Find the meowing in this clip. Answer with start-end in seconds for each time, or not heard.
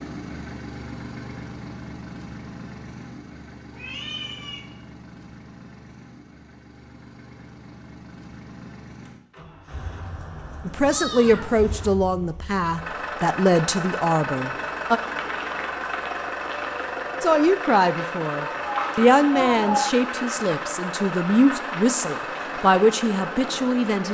3.7-4.6, 9.7-11.9, 18.6-19.9.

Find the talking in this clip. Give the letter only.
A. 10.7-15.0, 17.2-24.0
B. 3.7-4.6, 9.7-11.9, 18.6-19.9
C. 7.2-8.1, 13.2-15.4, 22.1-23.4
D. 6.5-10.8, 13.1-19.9
A.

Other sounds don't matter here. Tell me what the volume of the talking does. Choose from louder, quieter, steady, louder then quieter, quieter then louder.
steady.